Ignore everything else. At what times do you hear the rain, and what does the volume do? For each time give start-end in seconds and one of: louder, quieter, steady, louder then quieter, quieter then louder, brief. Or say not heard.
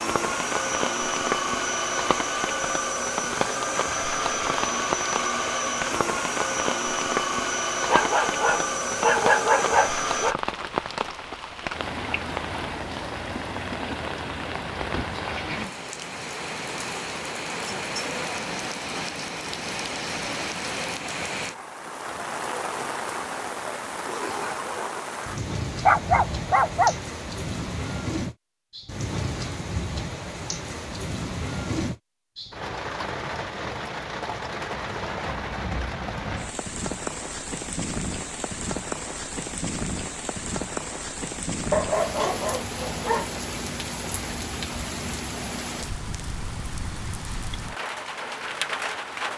0.0-49.3 steady.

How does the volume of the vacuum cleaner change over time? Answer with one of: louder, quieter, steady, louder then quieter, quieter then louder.
steady.